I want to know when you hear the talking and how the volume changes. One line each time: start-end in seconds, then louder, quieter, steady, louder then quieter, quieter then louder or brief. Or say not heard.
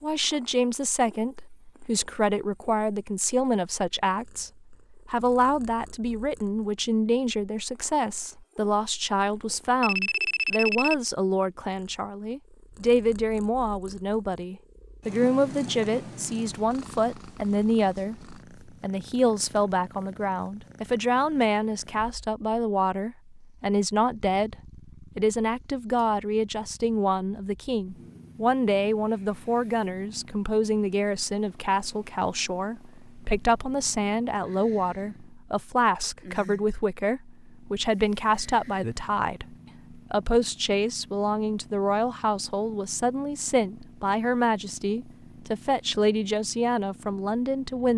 0.0-24.6 steady
25.1-47.9 steady.